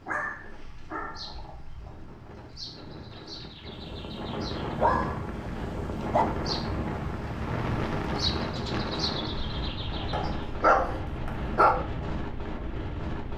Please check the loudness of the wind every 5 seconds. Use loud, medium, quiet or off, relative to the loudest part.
medium, loud, loud.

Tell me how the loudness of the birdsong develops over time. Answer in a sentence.
The volume of the birdsong goes up.